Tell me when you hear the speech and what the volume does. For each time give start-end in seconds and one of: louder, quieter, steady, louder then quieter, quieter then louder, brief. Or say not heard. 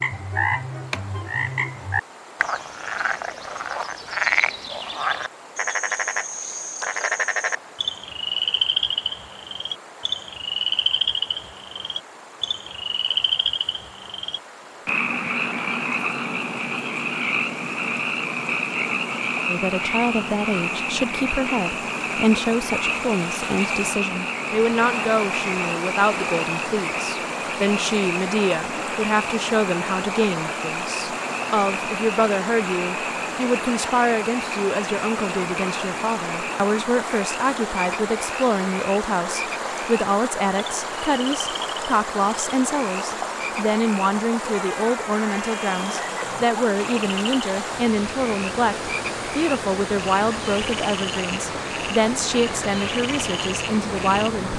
19.4-54.5 steady.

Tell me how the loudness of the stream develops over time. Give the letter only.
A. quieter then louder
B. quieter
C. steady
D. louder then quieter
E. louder
E.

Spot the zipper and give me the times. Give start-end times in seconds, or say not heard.
not heard.